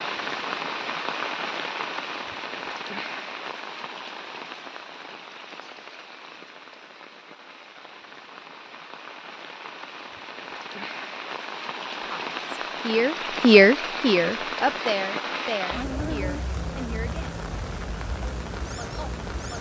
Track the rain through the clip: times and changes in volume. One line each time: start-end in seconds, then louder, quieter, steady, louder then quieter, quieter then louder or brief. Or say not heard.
0.0-19.5 quieter then louder.